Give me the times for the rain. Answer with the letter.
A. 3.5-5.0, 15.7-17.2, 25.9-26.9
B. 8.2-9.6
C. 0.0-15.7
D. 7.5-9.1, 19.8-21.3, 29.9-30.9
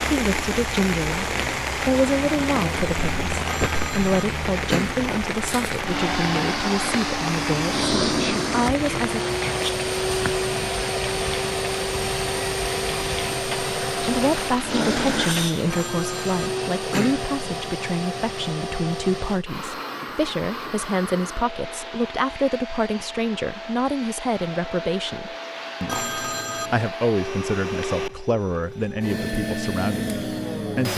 C.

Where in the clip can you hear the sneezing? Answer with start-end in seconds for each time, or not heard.
8.2-9.6.